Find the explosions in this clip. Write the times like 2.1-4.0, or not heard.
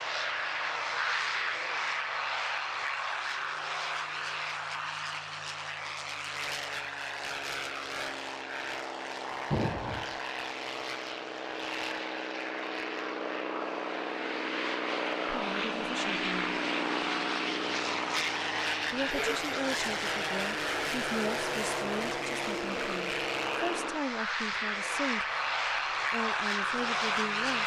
9.5-10.2.